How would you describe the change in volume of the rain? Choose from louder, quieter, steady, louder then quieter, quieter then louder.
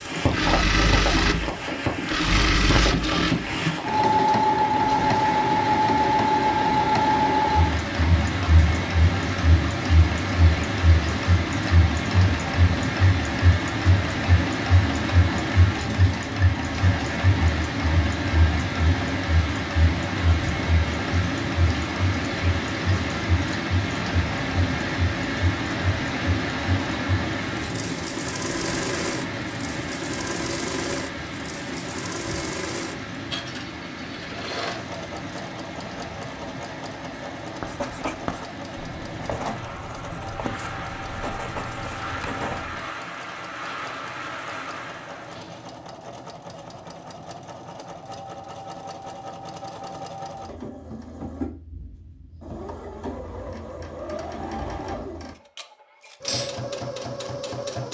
quieter.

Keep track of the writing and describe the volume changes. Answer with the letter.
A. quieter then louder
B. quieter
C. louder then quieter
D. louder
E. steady
E.